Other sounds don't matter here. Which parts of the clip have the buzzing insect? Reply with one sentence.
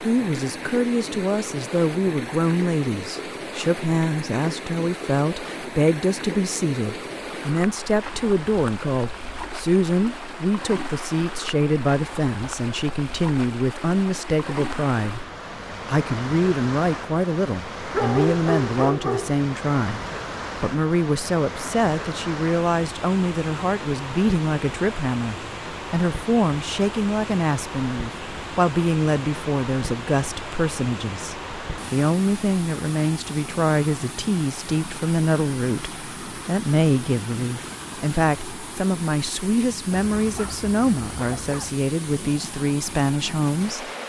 You can't hear the buzzing insect here.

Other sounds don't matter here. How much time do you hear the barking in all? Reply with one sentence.
You can hear the barking for 3 seconds altogether.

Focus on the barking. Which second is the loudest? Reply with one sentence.
The volume of the barking peaks at 18 seconds.